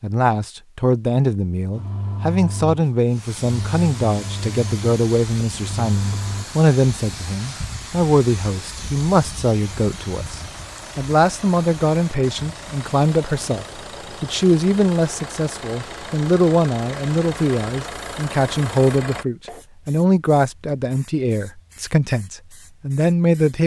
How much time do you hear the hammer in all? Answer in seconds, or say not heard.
not heard.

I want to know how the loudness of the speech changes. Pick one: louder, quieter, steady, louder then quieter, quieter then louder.
steady.